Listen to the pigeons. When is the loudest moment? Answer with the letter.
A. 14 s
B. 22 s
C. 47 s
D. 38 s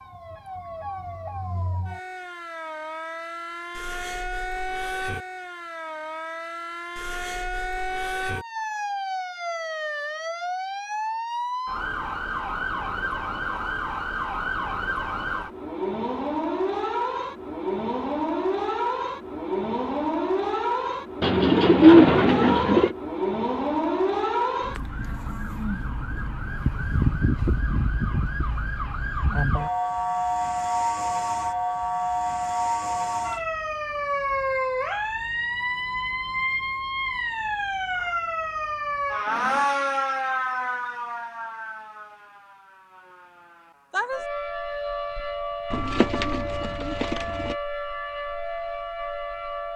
B.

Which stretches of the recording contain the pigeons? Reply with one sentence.
You can hear the pigeons from 21.2 to 22.9 s and from 45.7 to 47.5 s.